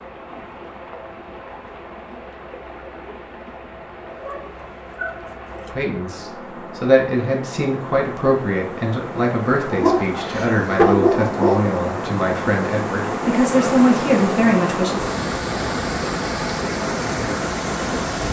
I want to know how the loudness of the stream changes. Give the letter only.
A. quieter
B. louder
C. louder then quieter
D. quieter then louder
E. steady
B.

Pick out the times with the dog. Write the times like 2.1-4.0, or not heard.
4.1-5.7, 9.7-11.7.